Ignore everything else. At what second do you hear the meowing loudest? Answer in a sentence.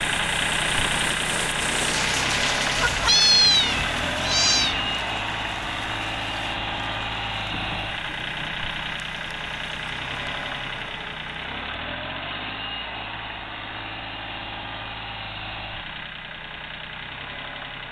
The loudest moment of the meowing is at 3 seconds.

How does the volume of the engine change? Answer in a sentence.
The volume of the engine goes down.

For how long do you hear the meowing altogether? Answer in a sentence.
The meowing can be heard for 2 seconds in total.